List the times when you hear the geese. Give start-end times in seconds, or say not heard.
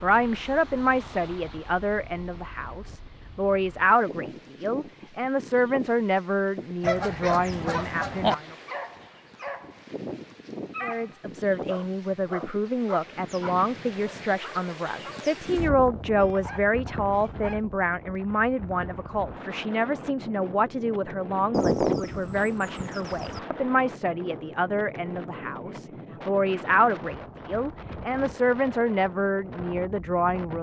6.8-8.3, 21.5-23.4.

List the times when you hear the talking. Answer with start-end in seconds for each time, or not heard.
0.0-8.6, 10.8-30.5.